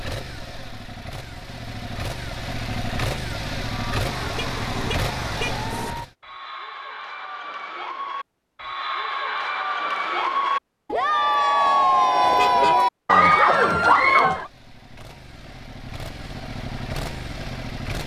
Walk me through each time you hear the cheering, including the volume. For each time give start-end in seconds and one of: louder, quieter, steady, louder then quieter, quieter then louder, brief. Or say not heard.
3.6-14.5 louder.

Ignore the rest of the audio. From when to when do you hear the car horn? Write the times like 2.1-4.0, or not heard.
4.0-6.0, 12.2-12.8.